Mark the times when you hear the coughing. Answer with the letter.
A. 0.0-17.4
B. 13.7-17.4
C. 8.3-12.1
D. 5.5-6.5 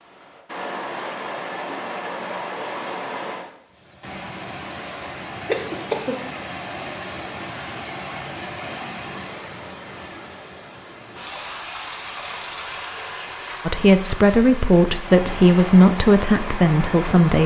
D.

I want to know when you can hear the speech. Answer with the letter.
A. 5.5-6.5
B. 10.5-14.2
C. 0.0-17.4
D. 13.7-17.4
D.